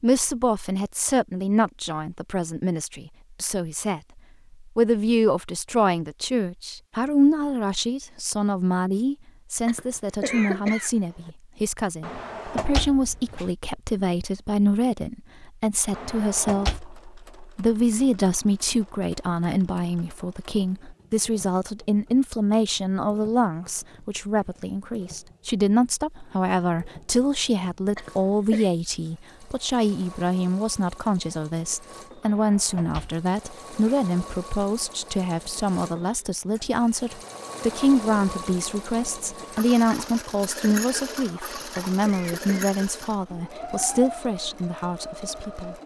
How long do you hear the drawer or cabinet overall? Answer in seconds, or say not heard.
3 s.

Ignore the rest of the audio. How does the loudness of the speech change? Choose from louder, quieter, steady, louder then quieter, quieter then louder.
steady.